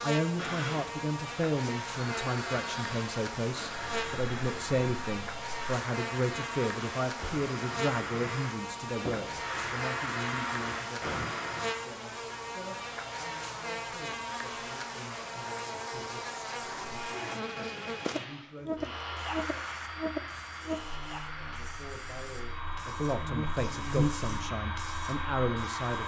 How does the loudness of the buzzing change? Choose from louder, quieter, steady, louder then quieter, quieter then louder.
steady.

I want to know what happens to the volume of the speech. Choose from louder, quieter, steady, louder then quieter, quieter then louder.
quieter then louder.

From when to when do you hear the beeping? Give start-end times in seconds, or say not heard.
not heard.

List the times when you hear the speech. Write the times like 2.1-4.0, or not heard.
0.0-18.9, 21.4-26.0.